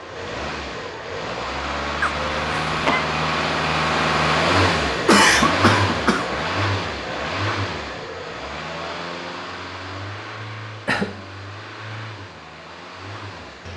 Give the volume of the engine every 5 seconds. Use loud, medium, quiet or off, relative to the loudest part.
loud, loud, quiet.